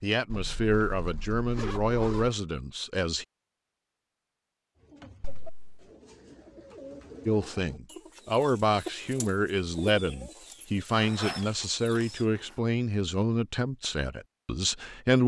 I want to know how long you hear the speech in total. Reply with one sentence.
The speech can be heard for 11 seconds in total.